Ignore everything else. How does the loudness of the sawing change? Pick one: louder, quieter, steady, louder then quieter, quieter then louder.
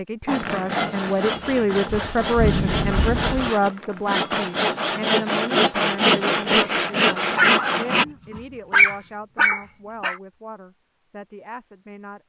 louder.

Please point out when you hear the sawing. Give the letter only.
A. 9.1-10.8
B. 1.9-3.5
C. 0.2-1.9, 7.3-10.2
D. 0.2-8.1
D.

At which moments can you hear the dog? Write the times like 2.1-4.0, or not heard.
0.2-1.9, 7.3-10.2.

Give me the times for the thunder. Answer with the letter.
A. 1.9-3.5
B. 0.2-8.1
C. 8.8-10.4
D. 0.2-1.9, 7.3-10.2
A.